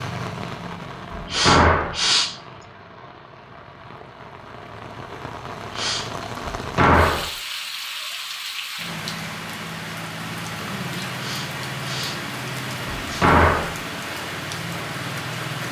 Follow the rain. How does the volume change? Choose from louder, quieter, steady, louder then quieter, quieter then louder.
louder.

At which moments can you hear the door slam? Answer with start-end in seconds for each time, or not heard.
1.1-2.0, 6.5-7.3, 12.9-13.8.